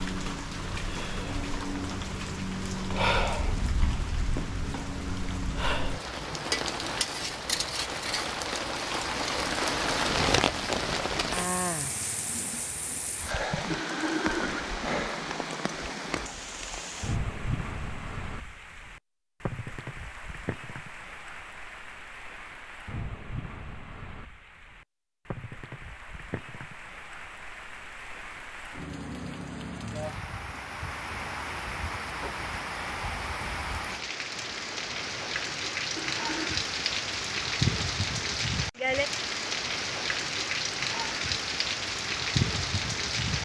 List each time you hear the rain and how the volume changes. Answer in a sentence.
The rain can be heard from 0.0 to 43.4 s, getting quieter then louder.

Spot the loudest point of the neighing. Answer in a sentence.
The loudest moment of the neighing is at 14 seconds.